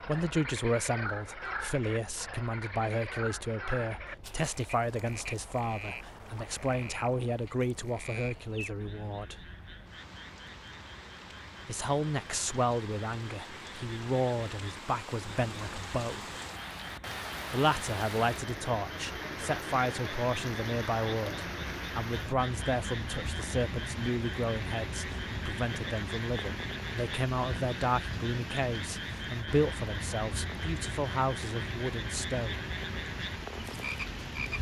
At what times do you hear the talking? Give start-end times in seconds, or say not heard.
0.1-9.3, 11.7-16.4, 17.5-32.7.